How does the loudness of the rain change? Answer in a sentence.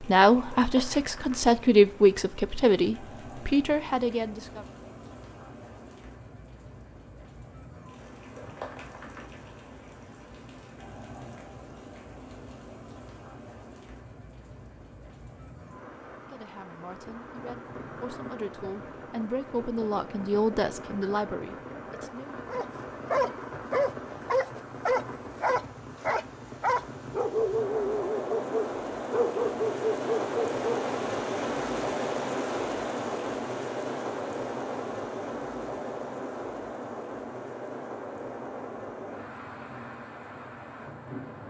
The volume of the rain goes up.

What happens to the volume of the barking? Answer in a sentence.
The volume of the barking stays about the same.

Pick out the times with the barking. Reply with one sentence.
You can hear the barking from 22.4 to 30.6 s.